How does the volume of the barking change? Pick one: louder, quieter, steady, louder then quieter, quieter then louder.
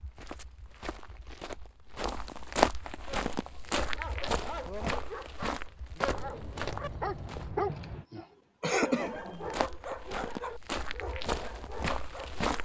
louder then quieter.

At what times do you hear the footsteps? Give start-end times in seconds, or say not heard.
0.0-7.7, 9.1-12.6.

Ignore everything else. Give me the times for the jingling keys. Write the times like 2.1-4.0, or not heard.
6.0-8.1.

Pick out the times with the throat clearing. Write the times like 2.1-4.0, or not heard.
7.7-9.8.